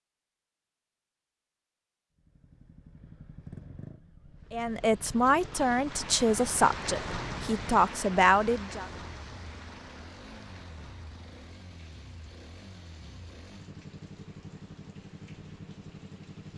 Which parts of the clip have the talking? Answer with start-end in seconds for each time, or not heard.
4.5-8.8.